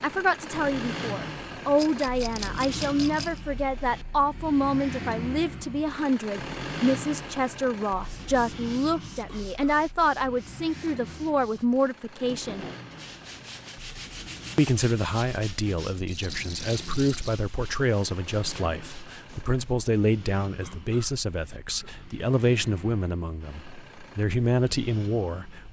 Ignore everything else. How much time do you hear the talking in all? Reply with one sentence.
The talking can be heard for 24 seconds in total.